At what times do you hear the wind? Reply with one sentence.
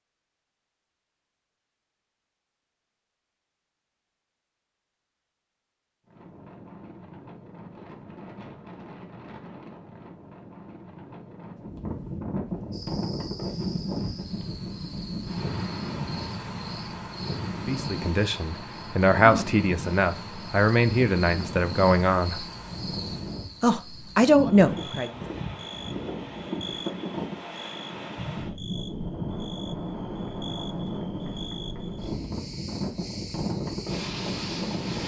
You can hear the wind from 6.0 to 35.0 s.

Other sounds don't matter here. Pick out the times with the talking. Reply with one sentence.
The talking can be heard from 17.6 to 22.4 s and from 23.6 to 25.2 s.